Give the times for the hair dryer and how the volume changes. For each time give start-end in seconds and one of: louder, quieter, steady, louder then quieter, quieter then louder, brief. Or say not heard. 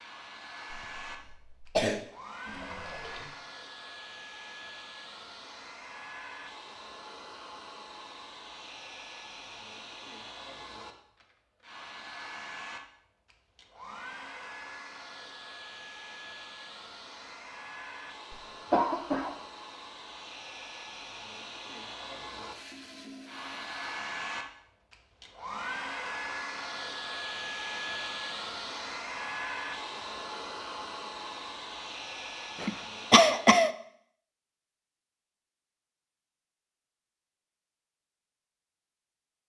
0.0-33.6 louder.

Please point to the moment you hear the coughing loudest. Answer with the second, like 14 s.
33 s.